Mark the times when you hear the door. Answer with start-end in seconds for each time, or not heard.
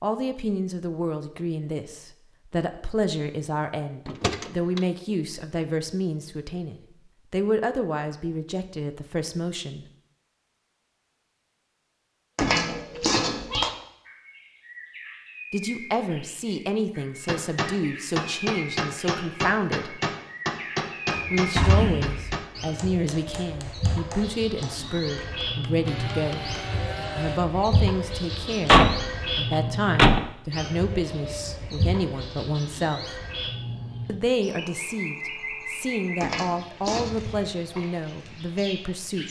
4.0-4.8, 21.1-22.1, 28.6-30.2.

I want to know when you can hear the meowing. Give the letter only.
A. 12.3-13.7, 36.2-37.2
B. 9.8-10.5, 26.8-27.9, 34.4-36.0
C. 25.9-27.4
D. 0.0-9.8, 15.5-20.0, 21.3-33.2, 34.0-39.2
A.